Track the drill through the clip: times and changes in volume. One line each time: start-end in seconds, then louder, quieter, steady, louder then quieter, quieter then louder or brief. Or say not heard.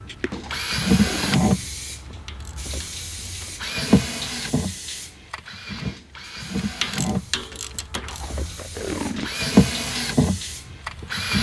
0.0-11.3 quieter then louder.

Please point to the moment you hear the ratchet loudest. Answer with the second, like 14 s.
7 s.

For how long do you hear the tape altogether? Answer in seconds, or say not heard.
3 s.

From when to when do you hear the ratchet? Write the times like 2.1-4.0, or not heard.
2.0-3.6, 6.6-8.2.